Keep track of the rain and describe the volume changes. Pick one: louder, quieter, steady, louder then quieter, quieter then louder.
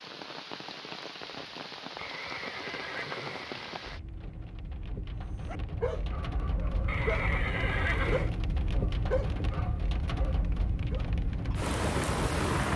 louder.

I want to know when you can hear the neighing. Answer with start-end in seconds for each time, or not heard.
1.9-4.0, 6.8-8.3.